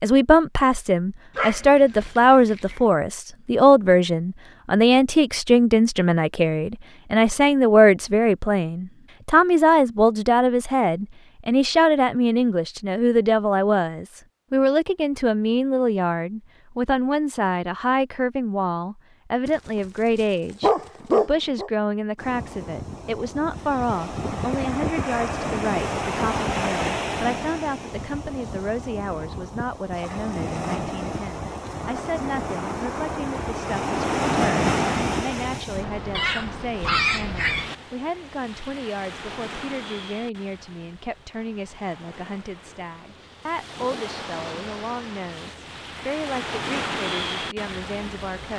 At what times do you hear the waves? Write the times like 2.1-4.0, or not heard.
22.1-48.5.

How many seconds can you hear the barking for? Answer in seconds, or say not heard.
5 s.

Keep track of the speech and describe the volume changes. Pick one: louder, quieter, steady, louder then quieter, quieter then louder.
quieter.